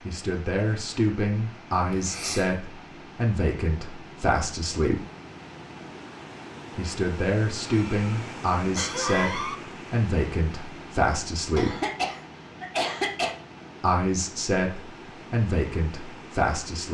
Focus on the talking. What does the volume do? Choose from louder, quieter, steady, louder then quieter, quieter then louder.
steady.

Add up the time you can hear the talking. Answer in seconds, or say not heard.
13 s.